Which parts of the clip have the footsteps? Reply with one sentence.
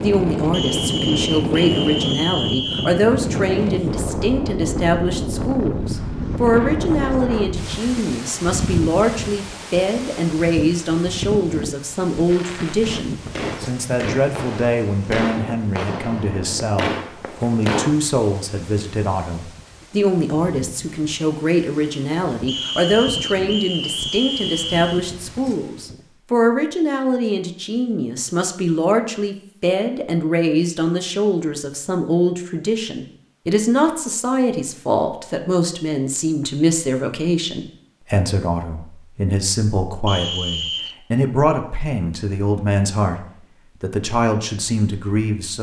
The footsteps can't be heard in this clip.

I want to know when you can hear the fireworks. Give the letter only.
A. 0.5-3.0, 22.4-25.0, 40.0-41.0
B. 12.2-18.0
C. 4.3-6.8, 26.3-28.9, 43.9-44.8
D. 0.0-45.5
B.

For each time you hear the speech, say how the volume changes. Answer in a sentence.
You can hear the speech from 0.0 to 45.5 s, at a steady volume.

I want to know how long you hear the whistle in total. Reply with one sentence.
You can hear the whistle for 6 seconds altogether.